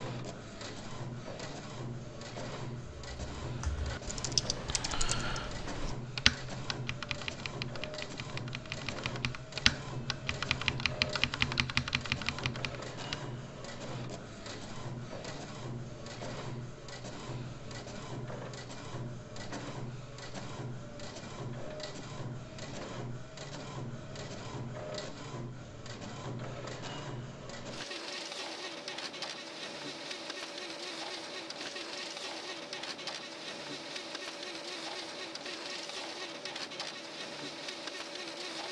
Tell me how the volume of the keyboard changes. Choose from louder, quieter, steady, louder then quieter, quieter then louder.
quieter then louder.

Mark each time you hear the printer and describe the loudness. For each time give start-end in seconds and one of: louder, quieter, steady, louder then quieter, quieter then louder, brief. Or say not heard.
0.0-38.6 steady.